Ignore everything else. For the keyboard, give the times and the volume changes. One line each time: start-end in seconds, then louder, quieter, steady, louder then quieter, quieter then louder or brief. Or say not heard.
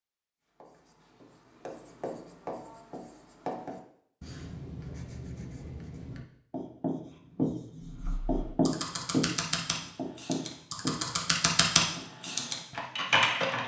7.8-13.6 louder.